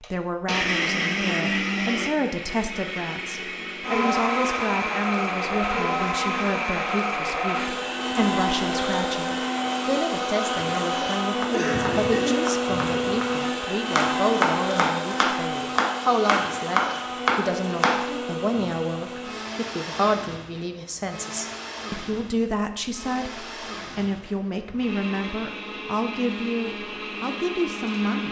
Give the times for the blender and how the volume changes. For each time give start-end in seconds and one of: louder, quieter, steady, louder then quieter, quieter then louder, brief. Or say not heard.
0.0-28.2 quieter.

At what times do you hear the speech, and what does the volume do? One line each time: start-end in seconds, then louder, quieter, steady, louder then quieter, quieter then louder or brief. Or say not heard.
0.0-28.2 steady.